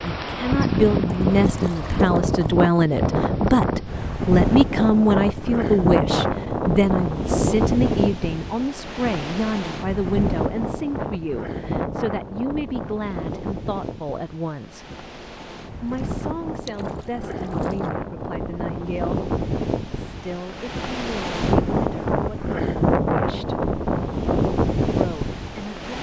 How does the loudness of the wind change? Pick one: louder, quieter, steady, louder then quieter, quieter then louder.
quieter then louder.